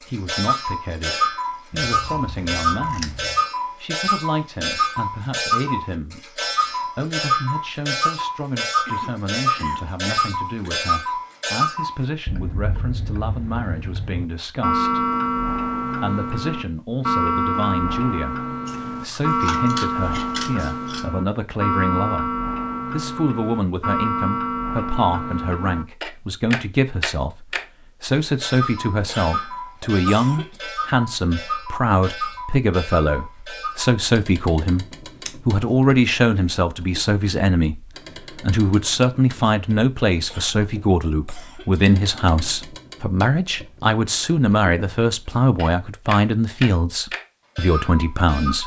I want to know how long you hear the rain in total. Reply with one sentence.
You can't hear the rain here.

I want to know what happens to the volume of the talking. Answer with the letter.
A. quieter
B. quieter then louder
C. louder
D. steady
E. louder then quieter
C.